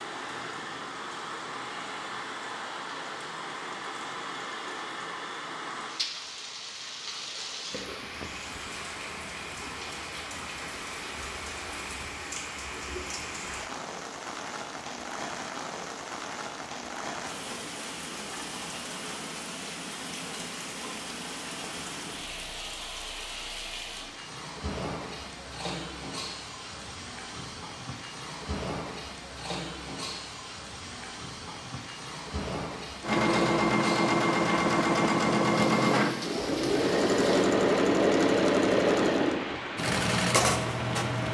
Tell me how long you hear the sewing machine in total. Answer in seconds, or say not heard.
8 s.